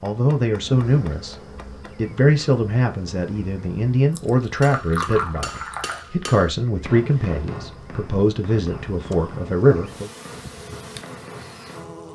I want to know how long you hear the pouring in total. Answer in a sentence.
The pouring can be heard for 2 seconds in total.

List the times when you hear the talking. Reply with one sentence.
You can hear the talking from 0.0 to 1.4 s and from 1.9 to 10.1 s.